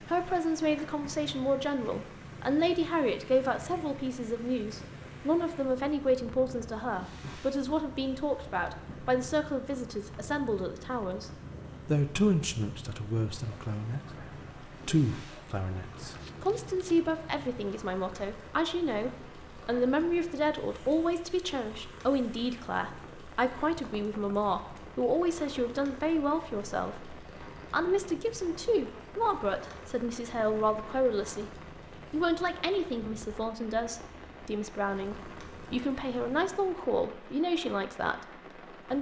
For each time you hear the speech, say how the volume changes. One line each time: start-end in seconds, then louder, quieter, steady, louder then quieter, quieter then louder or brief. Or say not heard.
0.0-38.9 steady.